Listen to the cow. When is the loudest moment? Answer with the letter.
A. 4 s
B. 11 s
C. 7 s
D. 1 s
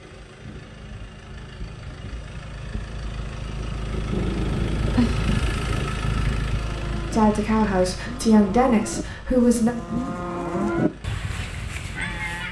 B.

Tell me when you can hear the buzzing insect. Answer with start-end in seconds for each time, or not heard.
not heard.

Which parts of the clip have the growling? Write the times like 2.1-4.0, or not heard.
4.1-6.0.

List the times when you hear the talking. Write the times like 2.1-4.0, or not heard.
7.1-9.7.